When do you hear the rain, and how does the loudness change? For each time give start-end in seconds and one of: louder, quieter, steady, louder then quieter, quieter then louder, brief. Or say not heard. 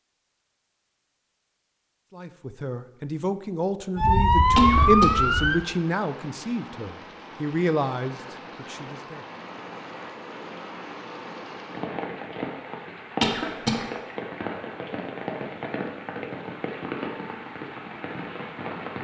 4.3-18.9 louder.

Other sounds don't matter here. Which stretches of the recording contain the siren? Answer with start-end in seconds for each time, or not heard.
4.0-5.6.